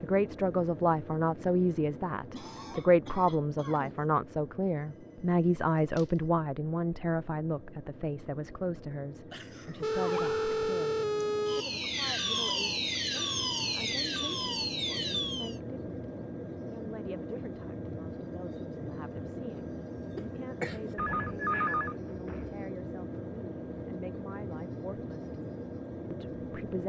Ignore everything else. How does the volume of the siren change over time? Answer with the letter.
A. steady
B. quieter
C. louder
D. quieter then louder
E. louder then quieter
C.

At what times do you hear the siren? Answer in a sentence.
The siren can be heard from 9.9 to 15.6 s.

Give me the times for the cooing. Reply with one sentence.
The cooing can't be heard in this clip.